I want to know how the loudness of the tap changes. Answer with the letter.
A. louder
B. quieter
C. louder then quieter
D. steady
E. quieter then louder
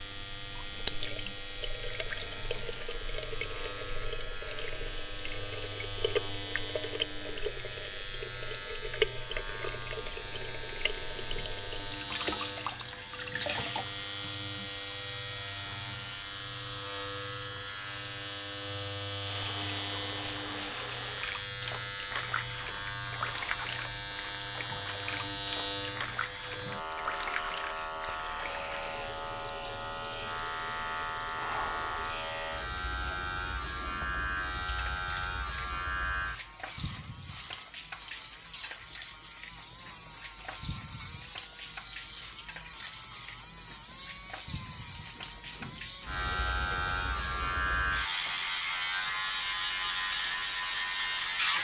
B.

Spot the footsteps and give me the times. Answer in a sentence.
You can't hear the footsteps here.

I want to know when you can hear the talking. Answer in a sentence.
The talking can't be heard in this clip.